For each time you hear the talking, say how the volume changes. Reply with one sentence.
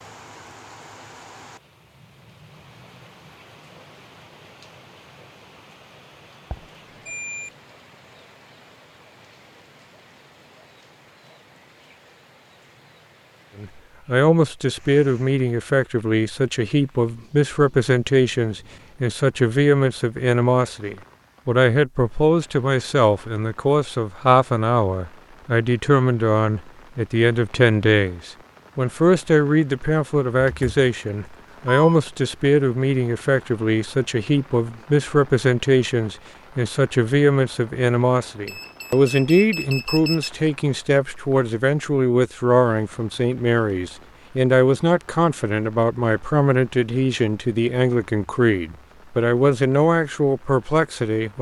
You can hear the talking from 13.6 to 51.3 s, at a steady volume.